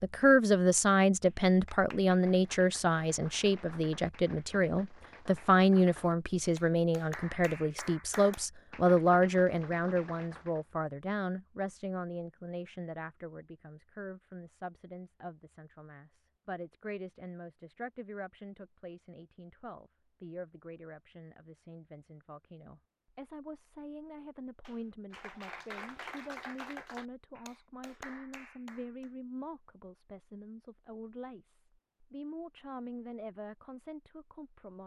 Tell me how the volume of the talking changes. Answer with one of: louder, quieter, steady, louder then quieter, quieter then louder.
quieter.